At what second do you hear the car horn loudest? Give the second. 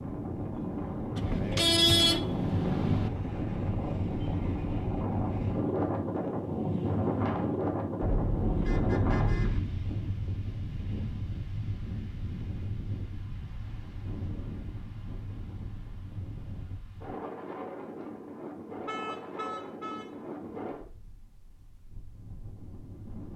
2 s.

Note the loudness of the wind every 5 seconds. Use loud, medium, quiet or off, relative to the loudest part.
loud, loud, medium, medium, quiet.